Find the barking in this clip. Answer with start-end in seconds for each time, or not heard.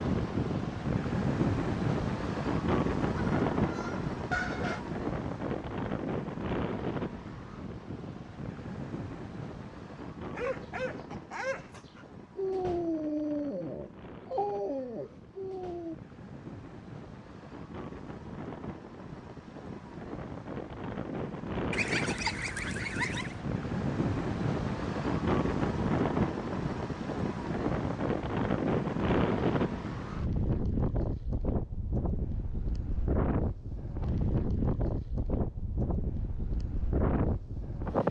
10.3-15.9.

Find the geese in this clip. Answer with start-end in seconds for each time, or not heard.
3.1-4.8, 21.7-23.4.